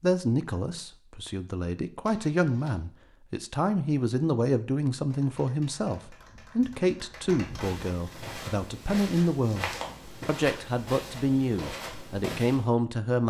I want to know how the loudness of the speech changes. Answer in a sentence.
The loudness of the speech stays about the same.